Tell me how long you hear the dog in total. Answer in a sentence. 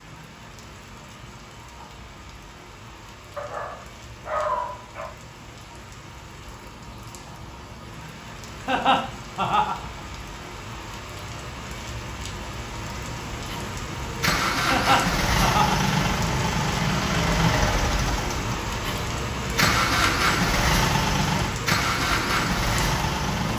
You can hear the dog for 2 seconds altogether.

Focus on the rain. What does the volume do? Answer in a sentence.
The volume of the rain goes up.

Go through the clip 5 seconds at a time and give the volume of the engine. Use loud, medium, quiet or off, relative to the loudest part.
off, off, loud, loud, loud.